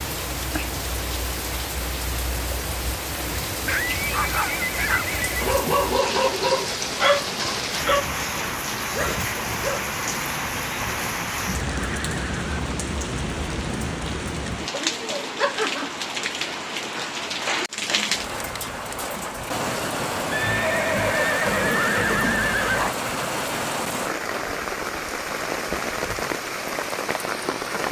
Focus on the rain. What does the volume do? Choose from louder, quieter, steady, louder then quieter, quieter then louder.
steady.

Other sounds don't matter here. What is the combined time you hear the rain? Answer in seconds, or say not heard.
28 s.